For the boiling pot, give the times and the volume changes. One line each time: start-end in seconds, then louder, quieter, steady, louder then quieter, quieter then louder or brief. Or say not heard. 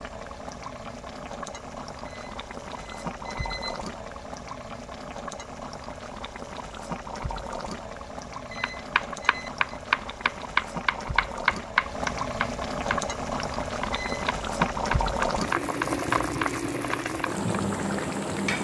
0.0-18.5 louder.